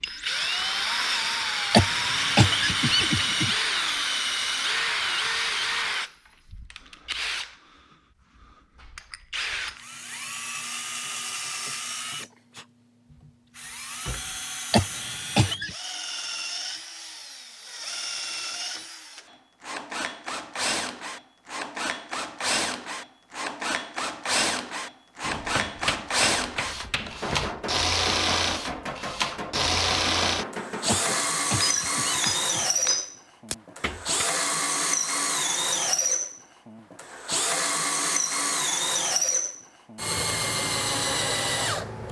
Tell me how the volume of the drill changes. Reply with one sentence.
The volume of the drill goes down, then up.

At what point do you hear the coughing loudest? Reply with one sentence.
The loudest moment of the coughing is at 2 seconds.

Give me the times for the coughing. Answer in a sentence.
You can hear the coughing from 1.7 to 3.5 s, from 14.7 to 15.7 s and from 30.9 to 32.7 s.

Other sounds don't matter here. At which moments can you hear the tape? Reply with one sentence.
You can't hear the tape here.